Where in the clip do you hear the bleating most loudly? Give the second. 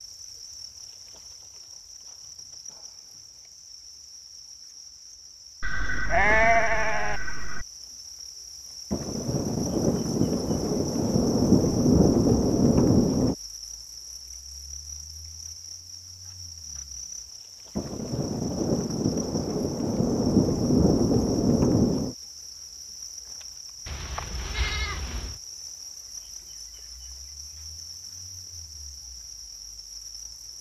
6 s.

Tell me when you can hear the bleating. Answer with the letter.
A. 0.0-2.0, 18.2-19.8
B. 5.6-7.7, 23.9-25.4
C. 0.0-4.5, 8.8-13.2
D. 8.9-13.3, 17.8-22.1
B.